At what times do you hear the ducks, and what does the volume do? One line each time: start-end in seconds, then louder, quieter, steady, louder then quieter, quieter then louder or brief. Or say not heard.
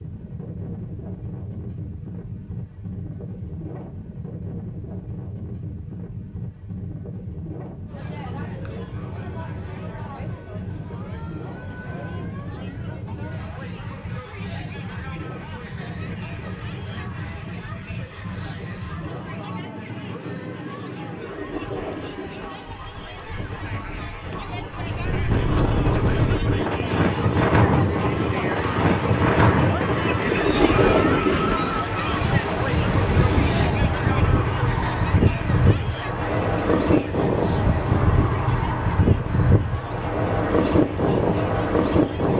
not heard.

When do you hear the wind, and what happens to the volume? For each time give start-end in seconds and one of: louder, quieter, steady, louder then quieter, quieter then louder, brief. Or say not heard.
0.0-42.3 louder.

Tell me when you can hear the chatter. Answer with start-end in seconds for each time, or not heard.
7.8-42.3.